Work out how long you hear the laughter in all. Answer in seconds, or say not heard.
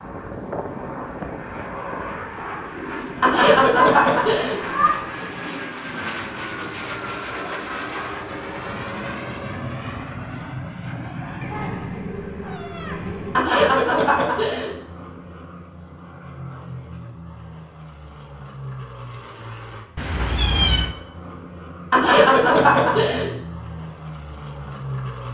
4 s.